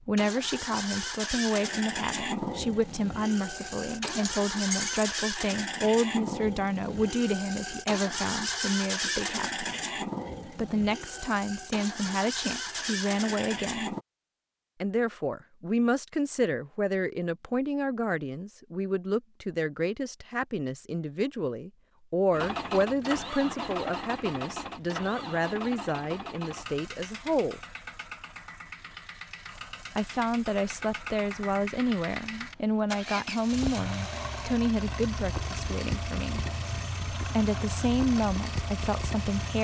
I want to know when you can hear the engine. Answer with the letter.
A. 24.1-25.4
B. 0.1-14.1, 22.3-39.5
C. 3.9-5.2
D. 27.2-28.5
B.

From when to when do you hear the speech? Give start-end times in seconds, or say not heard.
0.1-9.7, 10.6-13.9, 14.8-27.6, 29.9-36.5, 37.1-39.5.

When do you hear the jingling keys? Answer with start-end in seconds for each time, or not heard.
3.9-5.2.